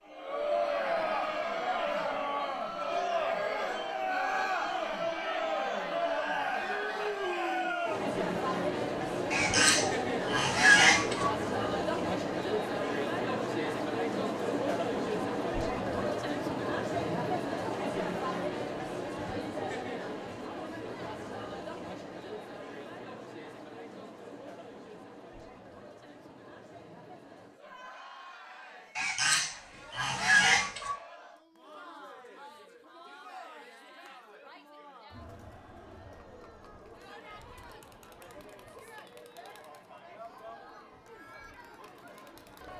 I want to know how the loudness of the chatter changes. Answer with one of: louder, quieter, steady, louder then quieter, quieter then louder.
quieter.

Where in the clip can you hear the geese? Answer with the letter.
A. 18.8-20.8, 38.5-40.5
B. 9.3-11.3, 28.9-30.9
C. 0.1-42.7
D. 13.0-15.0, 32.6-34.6
B.